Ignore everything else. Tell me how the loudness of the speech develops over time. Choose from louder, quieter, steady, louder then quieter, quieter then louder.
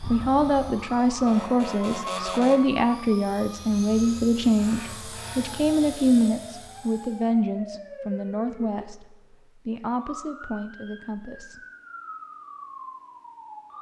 quieter.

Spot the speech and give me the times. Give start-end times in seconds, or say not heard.
0.1-11.7.